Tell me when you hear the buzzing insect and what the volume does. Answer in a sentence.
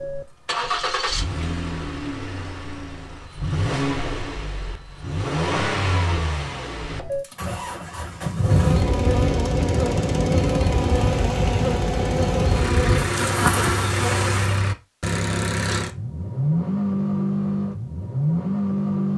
You can hear the buzzing insect from 8.4 to 14.6 s, at a steady volume.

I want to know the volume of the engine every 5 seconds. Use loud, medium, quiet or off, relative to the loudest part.
medium, loud, loud, loud.